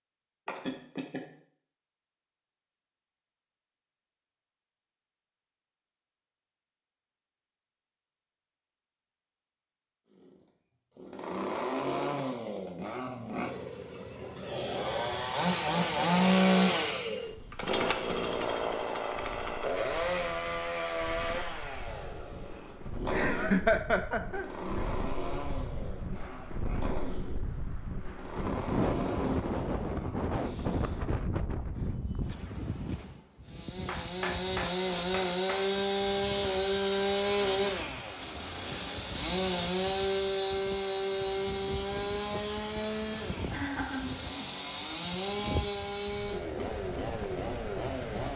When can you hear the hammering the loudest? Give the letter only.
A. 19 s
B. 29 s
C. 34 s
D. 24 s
C.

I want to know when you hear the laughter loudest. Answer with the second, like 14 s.
24 s.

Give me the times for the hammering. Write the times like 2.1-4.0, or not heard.
33.9-35.6.